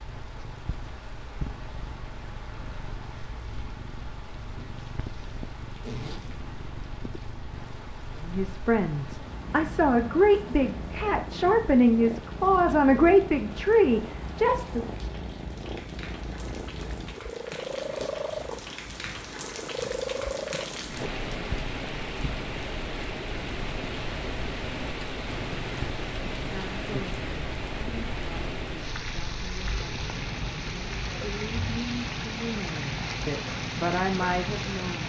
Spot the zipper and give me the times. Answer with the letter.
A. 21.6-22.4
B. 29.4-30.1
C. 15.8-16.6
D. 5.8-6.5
D.